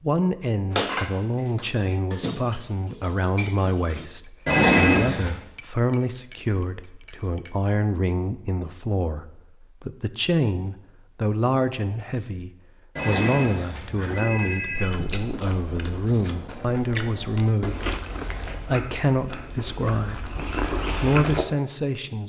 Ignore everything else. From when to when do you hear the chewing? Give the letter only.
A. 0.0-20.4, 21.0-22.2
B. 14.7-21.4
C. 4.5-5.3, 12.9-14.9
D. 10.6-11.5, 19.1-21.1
B.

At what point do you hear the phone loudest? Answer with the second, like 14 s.
5 s.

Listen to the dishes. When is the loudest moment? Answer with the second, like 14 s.
1 s.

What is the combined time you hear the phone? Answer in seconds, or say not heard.
3 s.